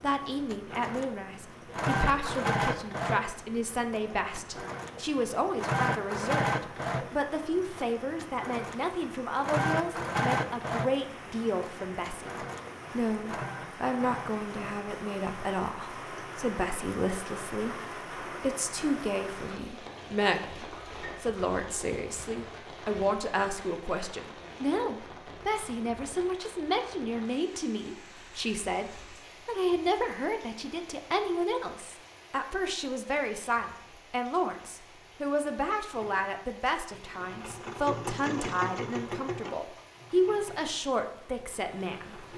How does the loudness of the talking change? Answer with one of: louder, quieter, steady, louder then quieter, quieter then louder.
steady.